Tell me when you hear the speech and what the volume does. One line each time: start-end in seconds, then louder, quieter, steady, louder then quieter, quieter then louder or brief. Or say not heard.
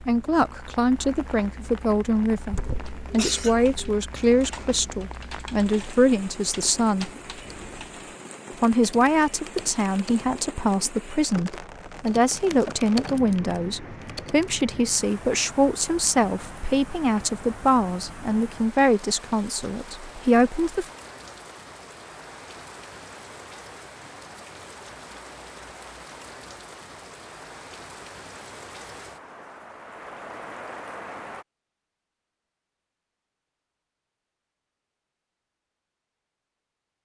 0.0-7.1 steady
8.6-20.9 steady.